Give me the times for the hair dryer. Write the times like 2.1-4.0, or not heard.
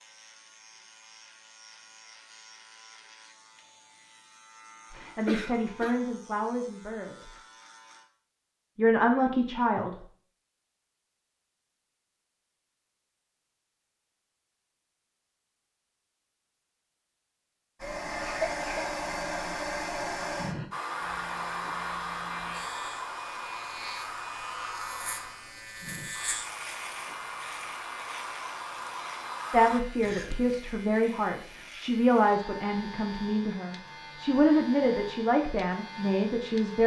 17.8-29.8.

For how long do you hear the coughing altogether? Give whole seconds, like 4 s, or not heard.
2 s.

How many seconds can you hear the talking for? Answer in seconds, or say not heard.
11 s.